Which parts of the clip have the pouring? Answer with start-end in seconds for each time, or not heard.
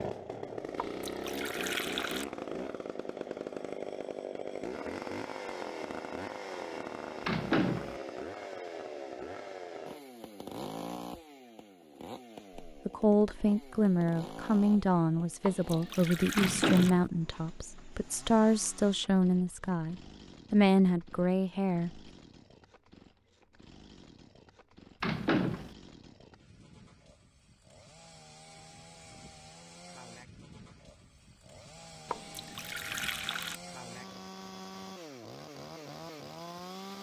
0.8-2.2, 15.4-16.9, 32.0-33.6.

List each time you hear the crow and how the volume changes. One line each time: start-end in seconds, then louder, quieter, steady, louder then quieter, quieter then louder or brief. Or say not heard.
not heard.